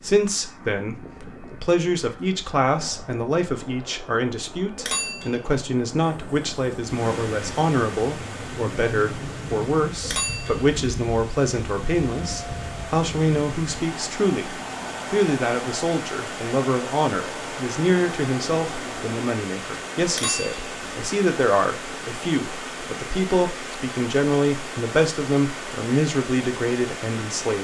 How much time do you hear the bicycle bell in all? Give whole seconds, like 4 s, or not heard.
2 s.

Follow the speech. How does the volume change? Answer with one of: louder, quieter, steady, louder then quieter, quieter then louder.
steady.